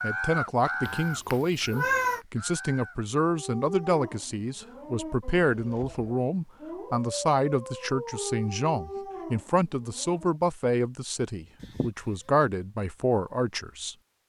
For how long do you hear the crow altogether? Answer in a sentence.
The crow can be heard for 3 seconds in total.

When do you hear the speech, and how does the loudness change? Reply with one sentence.
You can hear the speech from 0.0 to 13.9 s, at a steady volume.